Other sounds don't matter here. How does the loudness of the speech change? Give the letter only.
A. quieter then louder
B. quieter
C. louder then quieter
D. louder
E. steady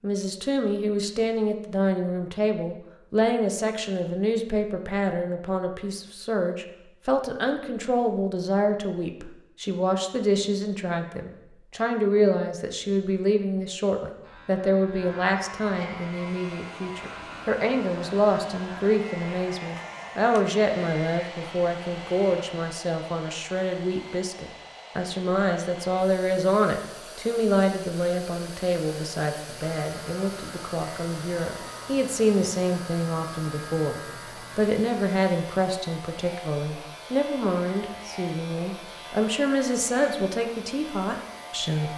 E.